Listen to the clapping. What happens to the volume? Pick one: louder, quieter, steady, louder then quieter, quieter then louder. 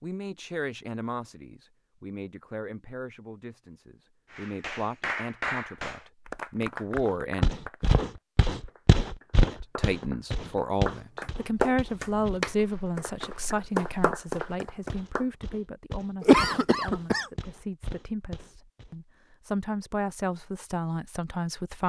quieter then louder.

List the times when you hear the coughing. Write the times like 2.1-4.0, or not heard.
16.2-17.2.